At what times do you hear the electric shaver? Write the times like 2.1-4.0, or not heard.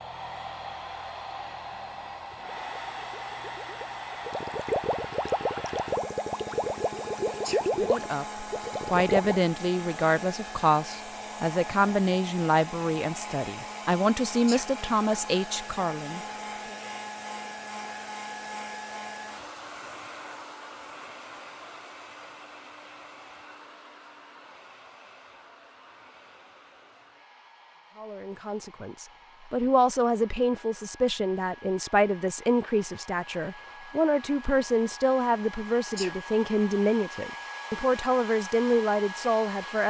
not heard.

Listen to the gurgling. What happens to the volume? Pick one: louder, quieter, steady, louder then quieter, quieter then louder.
louder.